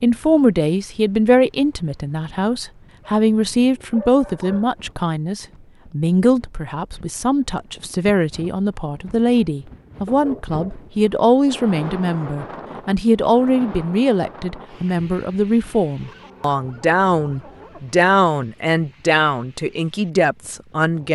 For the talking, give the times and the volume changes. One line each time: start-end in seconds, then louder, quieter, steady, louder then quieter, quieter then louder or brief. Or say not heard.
0.0-21.1 steady.